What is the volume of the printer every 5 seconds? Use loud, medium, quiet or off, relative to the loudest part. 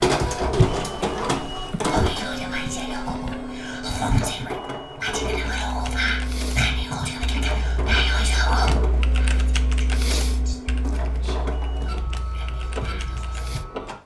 loud, medium, medium.